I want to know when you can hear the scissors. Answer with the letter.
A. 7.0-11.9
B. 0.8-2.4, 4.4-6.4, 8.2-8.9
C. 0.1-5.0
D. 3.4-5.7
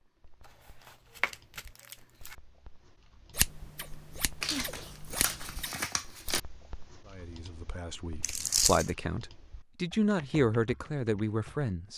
D.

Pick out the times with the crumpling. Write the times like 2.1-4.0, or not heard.
0.8-2.4, 4.4-6.4, 8.2-8.9.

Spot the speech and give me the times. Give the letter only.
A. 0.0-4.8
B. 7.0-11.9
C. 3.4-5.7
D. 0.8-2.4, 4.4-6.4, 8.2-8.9
B.